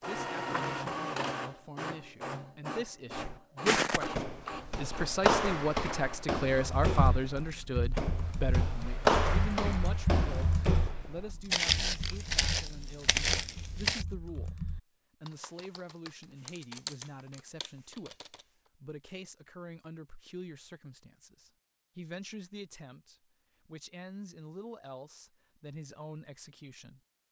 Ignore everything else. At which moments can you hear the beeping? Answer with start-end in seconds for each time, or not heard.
not heard.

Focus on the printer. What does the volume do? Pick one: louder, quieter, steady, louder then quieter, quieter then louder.
quieter.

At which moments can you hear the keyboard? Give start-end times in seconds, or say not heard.
6.7-18.4.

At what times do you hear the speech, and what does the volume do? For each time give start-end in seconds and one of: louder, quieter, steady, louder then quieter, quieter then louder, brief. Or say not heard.
0.0-14.6 louder then quieter
15.2-27.0 steady.